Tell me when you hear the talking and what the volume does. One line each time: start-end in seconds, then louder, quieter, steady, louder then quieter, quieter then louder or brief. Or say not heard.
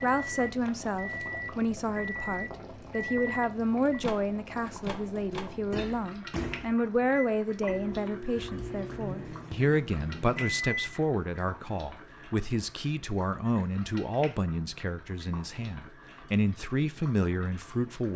0.0-18.1 steady.